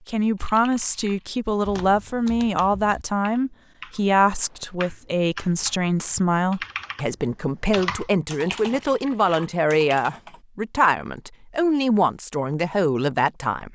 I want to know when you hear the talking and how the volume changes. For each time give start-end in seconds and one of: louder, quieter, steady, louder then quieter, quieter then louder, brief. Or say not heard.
0.1-13.7 steady.